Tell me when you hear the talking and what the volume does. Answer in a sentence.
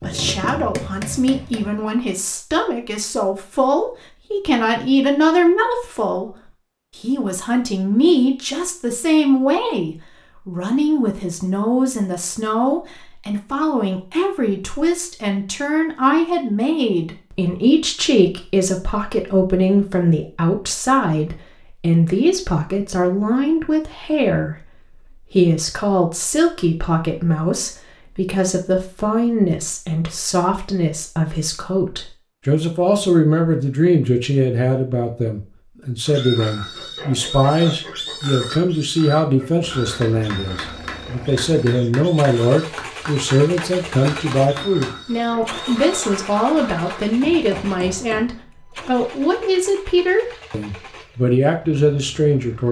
The talking can be heard from 0.0 to 52.6 s, at a steady volume.